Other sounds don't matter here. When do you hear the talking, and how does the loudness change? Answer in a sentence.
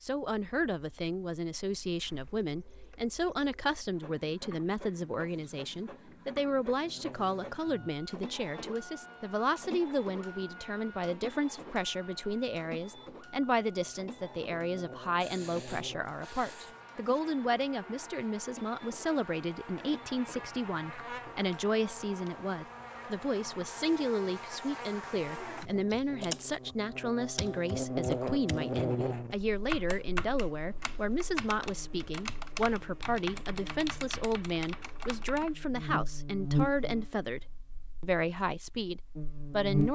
The talking can be heard from 0.0 to 39.9 s, at a steady volume.